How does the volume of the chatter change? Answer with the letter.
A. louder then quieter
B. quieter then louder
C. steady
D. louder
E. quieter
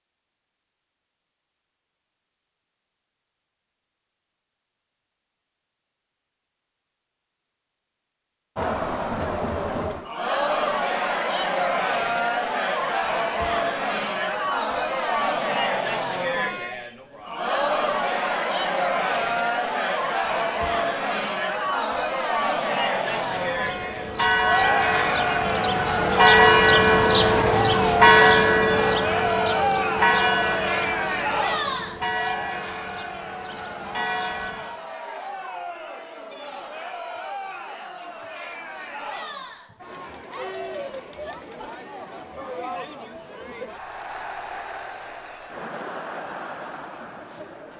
E.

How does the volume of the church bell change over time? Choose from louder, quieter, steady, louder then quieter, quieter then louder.
louder then quieter.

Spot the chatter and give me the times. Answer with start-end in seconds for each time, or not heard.
8.6-47.7.